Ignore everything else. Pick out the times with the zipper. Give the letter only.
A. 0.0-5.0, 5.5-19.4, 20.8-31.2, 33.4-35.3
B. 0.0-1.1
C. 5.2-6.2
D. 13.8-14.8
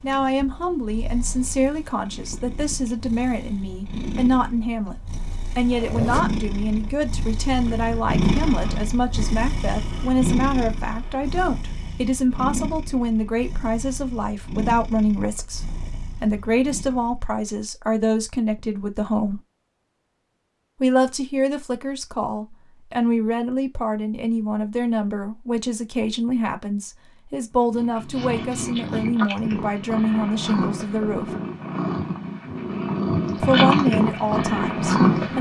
C.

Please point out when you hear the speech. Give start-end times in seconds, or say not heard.
0.0-5.0, 5.5-19.4, 20.8-31.2, 33.4-35.3.